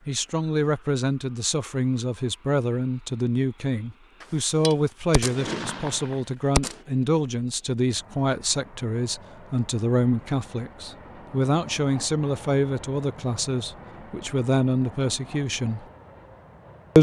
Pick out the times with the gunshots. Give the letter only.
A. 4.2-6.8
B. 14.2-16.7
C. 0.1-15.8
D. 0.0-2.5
A.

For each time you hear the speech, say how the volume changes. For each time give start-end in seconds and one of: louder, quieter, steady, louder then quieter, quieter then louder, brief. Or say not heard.
0.1-15.8 steady.